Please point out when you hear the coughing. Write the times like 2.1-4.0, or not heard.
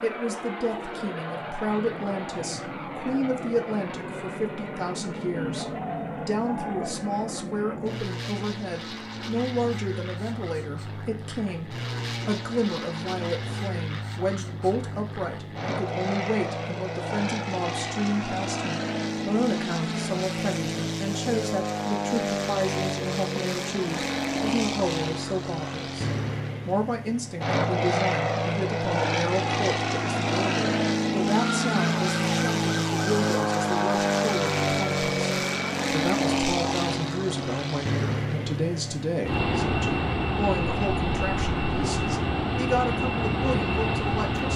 not heard.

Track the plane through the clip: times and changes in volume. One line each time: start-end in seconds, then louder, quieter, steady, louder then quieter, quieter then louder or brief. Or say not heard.
0.0-44.5 louder.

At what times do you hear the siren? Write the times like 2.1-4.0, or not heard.
31.6-35.8.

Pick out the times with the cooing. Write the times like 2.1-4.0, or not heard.
5.3-7.0.